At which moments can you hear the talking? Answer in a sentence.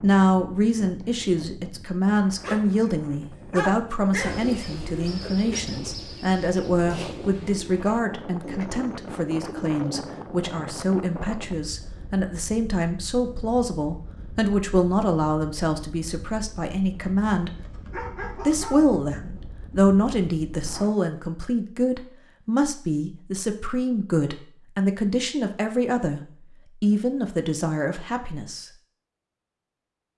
The talking can be heard from 0.0 to 17.6 s, from 18.4 to 26.2 s and from 26.8 to 28.7 s.